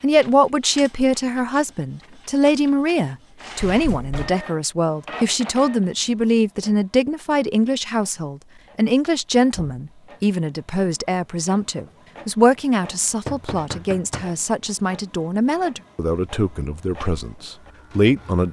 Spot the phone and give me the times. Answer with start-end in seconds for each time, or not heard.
not heard.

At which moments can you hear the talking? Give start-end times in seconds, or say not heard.
0.0-18.4.